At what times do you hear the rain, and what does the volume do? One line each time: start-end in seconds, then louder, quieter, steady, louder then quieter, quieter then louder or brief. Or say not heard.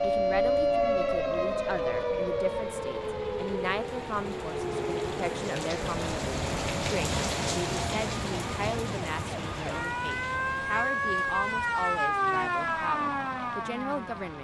0.0-14.3 louder then quieter.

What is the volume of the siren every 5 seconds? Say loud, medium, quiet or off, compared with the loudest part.
loud, medium, loud.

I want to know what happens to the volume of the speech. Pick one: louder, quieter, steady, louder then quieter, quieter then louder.
steady.